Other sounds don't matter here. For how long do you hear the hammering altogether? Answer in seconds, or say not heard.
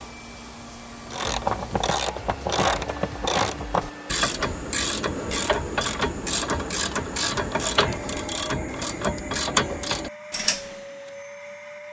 not heard.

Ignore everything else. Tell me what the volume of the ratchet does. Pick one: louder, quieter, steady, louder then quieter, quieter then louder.
steady.